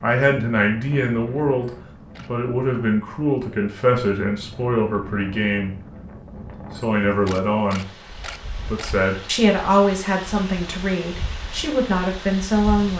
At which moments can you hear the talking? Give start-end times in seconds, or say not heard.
0.0-5.8, 6.8-7.8, 8.7-12.9.